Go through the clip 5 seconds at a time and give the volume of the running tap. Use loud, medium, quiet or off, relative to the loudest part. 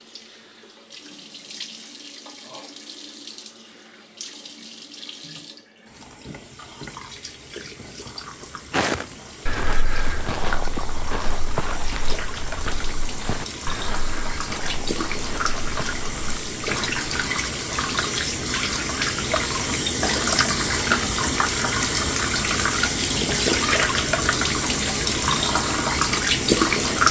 quiet, quiet, quiet, medium, loud, loud.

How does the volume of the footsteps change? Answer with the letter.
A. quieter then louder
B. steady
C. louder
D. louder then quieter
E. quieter
E.